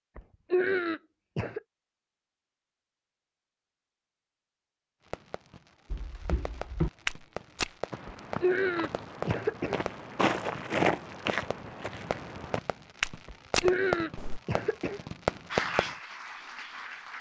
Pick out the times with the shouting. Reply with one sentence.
The shouting can't be heard in this clip.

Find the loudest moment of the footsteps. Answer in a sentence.
The volume of the footsteps peaks at 11 seconds.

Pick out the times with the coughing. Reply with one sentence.
The coughing can be heard from 0.1 to 1.6 s, from 8.1 to 9.8 s and from 13.2 to 15.0 s.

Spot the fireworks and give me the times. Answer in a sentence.
You can hear the fireworks from 5.0 to 15.9 s.